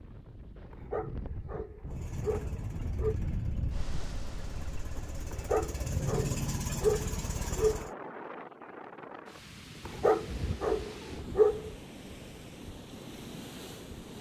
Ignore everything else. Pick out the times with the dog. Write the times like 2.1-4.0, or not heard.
0.7-3.1, 5.3-7.8, 9.8-11.8.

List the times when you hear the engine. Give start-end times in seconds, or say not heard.
1.9-7.9.